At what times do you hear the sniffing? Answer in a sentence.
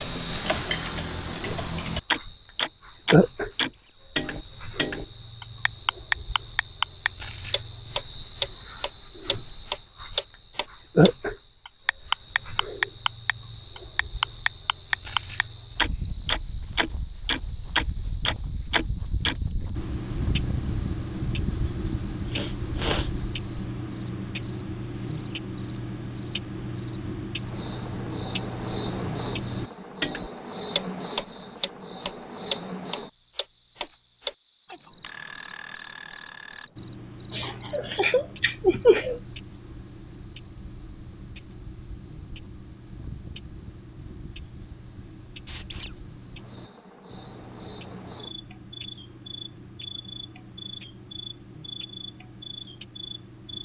You can hear the sniffing from 21.9 to 23.1 s and from 37.3 to 39.2 s.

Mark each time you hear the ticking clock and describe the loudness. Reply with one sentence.
You can hear the ticking clock from 0.0 to 53.6 s, getting quieter.